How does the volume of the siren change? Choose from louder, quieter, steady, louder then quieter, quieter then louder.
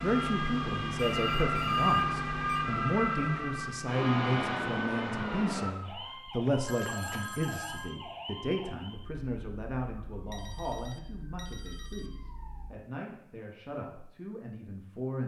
quieter.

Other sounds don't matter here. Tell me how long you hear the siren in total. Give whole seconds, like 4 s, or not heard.
13 s.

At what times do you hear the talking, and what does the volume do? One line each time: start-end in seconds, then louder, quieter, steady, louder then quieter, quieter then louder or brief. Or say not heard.
0.0-15.2 quieter.